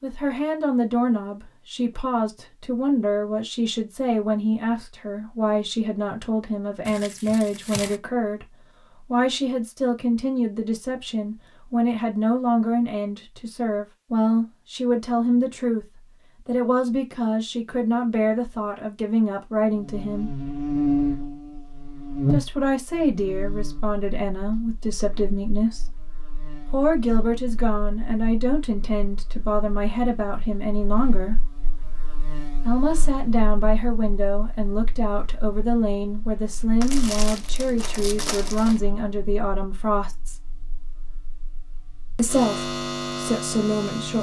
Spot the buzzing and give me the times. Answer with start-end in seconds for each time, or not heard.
19.7-44.1.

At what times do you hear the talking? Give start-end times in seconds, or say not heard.
0.0-20.4, 22.3-31.5, 32.6-40.4, 42.1-44.1.